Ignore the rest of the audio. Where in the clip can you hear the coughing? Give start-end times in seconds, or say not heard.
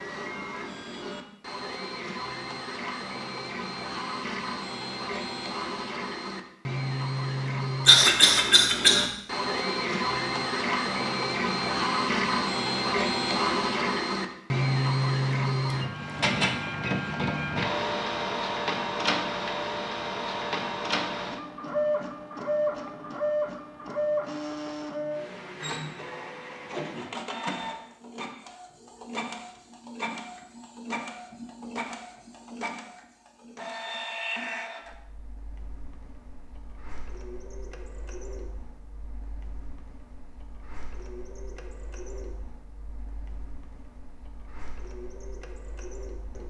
7.8-9.1.